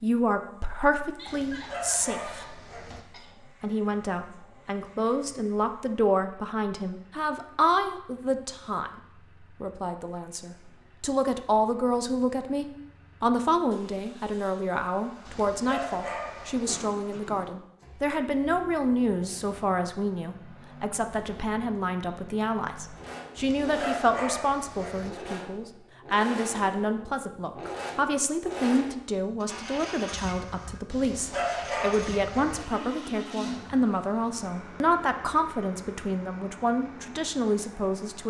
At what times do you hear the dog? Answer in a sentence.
You can hear the dog from 1.2 to 3.0 s, from 15.2 to 16.8 s, from 23.4 to 25.1 s and from 30.9 to 32.6 s.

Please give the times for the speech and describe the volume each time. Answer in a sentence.
You can hear the speech briefly from 0.0 to 2.6 s; and from 3.4 to 38.2 s, at a steady volume.